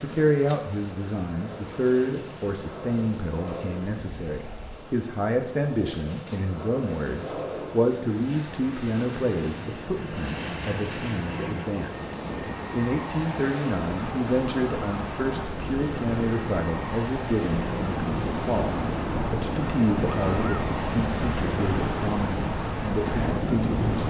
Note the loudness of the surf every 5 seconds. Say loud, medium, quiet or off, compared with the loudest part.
quiet, quiet, medium, loud, loud.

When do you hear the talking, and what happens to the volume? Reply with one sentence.
You can hear the talking from 0.0 to 24.0 s, at a steady volume.